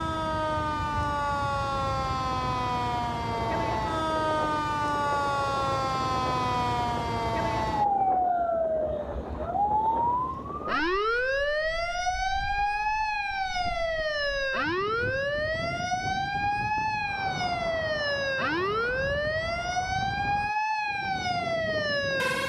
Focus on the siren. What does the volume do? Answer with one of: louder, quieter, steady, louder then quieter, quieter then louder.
steady.